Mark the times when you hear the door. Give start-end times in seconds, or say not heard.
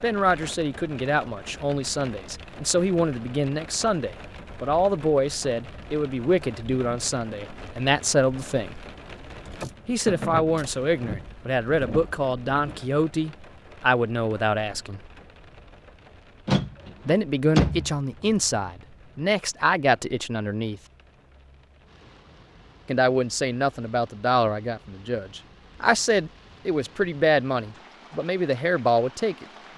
16.4-17.9.